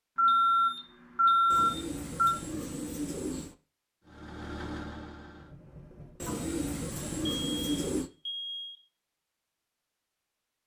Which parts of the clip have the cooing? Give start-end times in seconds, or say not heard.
1.5-3.5, 6.2-8.1.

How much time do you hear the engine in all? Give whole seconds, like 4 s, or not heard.
2 s.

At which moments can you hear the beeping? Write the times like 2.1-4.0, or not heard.
0.1-2.4, 7.2-8.8.